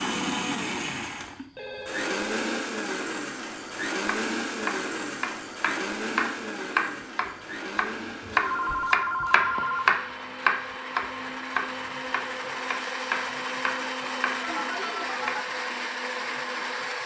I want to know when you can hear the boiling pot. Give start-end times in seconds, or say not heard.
not heard.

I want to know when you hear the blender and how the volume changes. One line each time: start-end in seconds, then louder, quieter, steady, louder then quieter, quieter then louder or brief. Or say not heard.
0.0-17.0 quieter then louder.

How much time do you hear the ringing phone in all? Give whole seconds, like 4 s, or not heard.
4 s.